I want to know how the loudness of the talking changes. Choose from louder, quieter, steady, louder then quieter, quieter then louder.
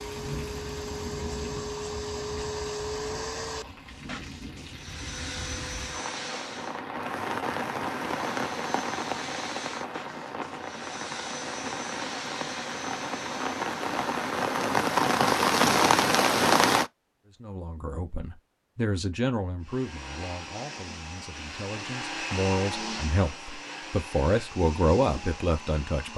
quieter then louder.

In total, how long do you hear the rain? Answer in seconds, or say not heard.
17 s.